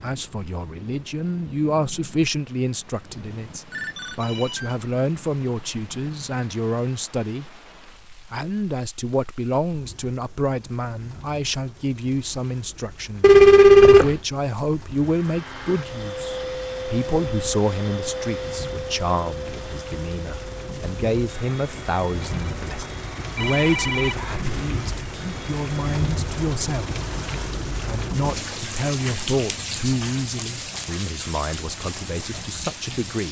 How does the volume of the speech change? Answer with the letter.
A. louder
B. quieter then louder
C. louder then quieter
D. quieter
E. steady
E.